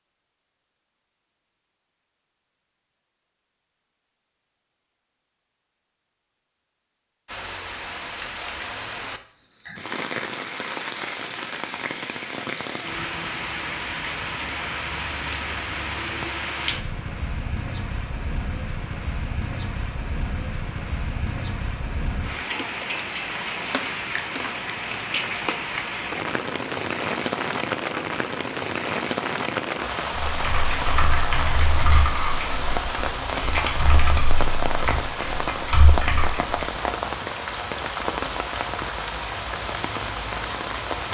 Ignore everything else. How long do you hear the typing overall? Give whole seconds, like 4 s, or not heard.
6 s.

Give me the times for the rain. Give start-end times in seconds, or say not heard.
7.2-41.0.